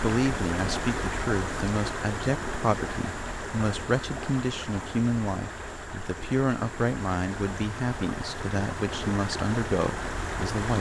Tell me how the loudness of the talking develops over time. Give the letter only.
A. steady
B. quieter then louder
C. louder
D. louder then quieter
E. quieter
A.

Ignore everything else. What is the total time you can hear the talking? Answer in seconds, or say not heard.
11 s.